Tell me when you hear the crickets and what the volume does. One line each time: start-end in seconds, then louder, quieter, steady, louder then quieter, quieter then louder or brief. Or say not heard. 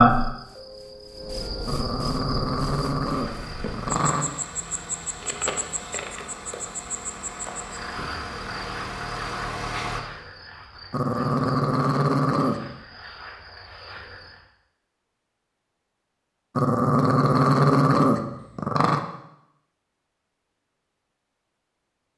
0.0-14.4 quieter.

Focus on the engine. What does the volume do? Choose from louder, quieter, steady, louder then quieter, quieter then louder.
louder.